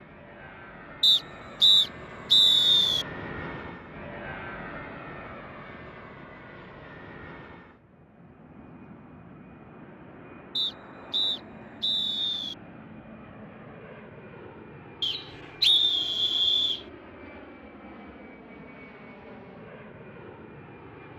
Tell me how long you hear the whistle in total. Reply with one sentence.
The whistle can be heard for 6 seconds in total.